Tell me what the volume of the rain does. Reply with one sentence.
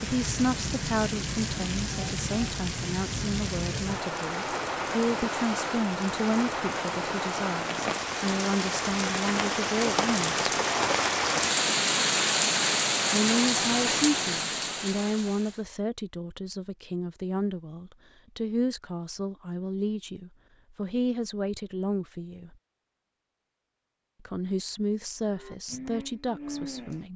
The loudness of the rain goes up.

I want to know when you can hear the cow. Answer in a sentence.
You can hear the cow from 25.4 to 27.1 s.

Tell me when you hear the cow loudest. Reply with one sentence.
The volume of the cow peaks at 27 seconds.